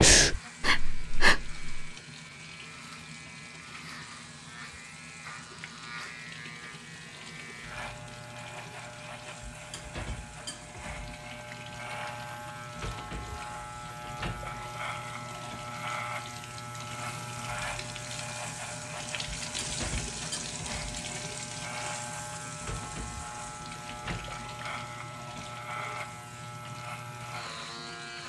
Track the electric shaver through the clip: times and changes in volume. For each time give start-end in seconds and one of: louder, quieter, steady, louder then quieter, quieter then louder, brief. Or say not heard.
0.1-28.2 louder.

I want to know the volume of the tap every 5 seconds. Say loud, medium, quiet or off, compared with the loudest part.
medium, medium, medium, loud, loud, medium.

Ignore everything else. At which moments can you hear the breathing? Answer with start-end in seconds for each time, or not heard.
0.0-1.7.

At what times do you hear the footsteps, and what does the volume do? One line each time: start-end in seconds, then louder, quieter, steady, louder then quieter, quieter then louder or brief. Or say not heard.
not heard.